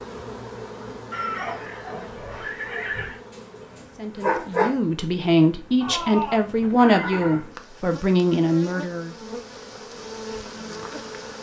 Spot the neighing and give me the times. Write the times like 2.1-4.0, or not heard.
1.1-3.2, 5.8-7.5.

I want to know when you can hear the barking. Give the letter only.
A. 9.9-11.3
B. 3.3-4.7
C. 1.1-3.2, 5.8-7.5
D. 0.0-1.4
B.